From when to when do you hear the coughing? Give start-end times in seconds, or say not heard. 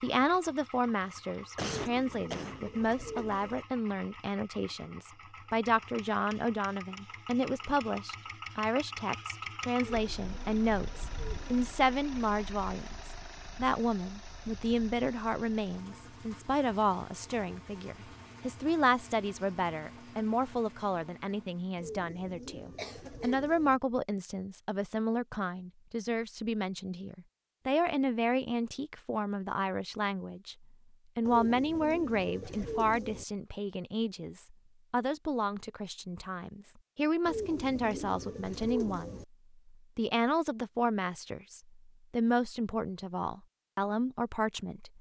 1.6-2.6, 22.8-23.5.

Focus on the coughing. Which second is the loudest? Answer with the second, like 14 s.
2 s.